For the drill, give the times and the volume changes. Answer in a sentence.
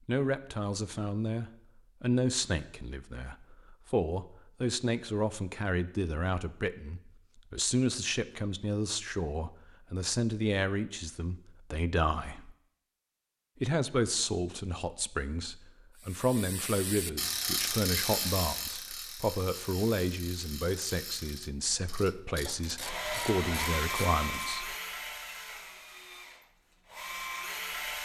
The drill can be heard from 22.6 to 28.0 s, getting quieter then louder.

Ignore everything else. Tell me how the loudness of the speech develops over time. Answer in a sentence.
The loudness of the speech stays about the same.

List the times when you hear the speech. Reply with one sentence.
The speech can be heard from 0.1 to 12.5 s and from 13.6 to 24.8 s.